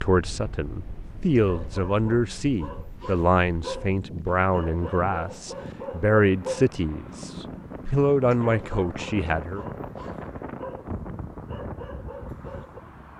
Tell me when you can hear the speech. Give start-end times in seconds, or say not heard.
0.0-9.7.